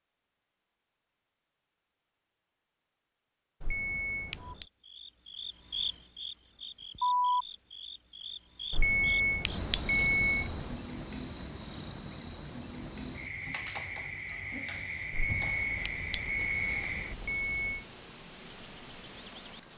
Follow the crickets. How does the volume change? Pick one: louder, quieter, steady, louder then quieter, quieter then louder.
quieter then louder.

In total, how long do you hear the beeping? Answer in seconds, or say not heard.
6 s.